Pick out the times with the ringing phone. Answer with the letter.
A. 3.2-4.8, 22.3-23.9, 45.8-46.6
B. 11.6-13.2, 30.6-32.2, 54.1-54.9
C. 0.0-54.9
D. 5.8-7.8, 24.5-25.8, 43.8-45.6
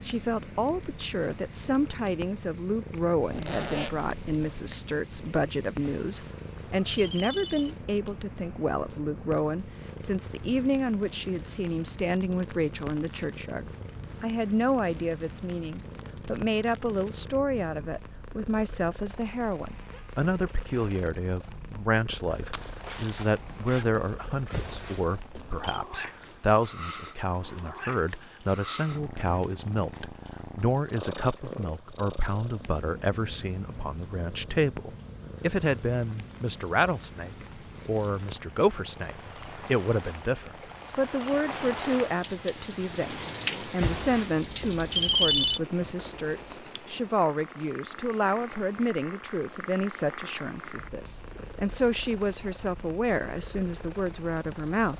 D.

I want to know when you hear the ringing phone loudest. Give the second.
45 s.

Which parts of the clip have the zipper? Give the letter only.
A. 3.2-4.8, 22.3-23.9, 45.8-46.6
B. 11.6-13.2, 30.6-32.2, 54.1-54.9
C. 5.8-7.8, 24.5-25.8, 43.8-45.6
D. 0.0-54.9
A.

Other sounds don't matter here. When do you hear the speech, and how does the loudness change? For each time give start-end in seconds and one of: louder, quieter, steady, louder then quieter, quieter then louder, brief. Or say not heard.
0.0-54.9 steady.